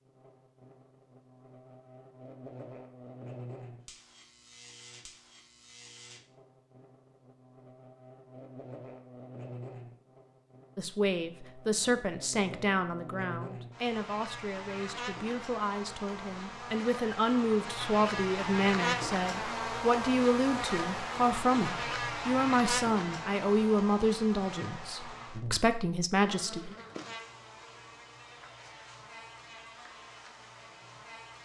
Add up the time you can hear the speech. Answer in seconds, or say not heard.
16 s.